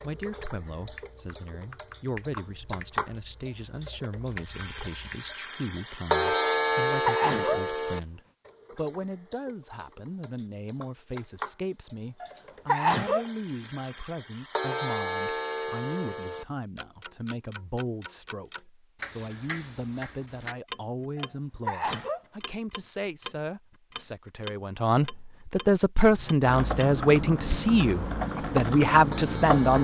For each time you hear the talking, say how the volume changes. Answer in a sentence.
The talking can be heard from 0.0 to 29.8 s, getting louder.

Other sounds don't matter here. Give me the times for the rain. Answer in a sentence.
You can't hear the rain here.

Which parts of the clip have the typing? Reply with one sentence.
The typing can be heard from 0.0 to 5.3 s and from 26.0 to 29.8 s.